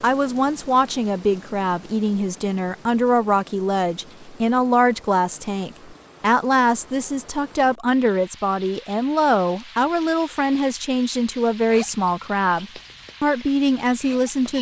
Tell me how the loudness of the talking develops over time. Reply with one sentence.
The loudness of the talking stays about the same.